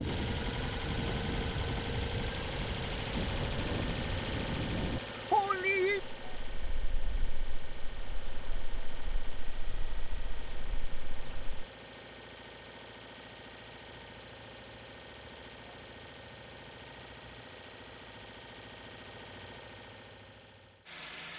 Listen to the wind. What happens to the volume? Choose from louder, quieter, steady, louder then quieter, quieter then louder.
louder then quieter.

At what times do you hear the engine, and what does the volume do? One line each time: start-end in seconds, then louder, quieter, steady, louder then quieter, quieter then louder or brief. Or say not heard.
0.0-21.3 quieter.